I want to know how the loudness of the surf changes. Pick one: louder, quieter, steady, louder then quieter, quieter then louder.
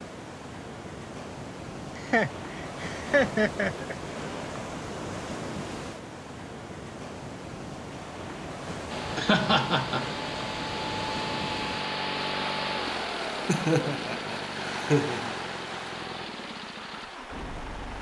steady.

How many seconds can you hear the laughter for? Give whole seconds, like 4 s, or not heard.
5 s.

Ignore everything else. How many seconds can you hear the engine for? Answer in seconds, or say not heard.
9 s.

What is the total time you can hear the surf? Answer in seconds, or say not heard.
18 s.